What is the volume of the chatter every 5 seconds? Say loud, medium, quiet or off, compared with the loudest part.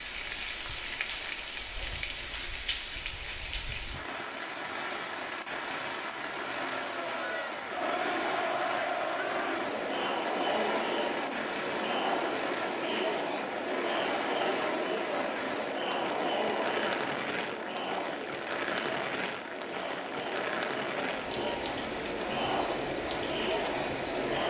off, loud, loud, loud, loud.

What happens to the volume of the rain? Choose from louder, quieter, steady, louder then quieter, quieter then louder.
steady.